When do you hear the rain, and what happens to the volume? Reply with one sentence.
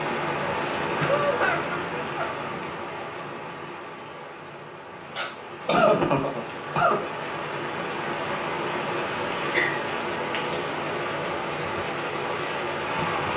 The rain can be heard from 0.0 to 13.3 s, getting quieter then louder.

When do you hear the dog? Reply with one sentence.
You can't hear the dog here.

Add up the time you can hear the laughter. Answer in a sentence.
The laughter can be heard for 4 seconds in total.